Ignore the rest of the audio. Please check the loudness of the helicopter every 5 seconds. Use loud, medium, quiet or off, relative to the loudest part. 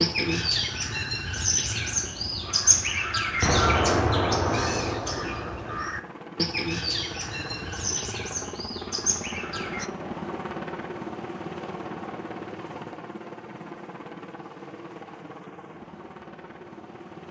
medium, loud, loud, medium.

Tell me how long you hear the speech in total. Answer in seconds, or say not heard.
not heard.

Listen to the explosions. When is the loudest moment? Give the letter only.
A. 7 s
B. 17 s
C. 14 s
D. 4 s
D.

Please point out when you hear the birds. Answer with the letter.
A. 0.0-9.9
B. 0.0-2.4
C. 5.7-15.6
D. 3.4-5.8
A.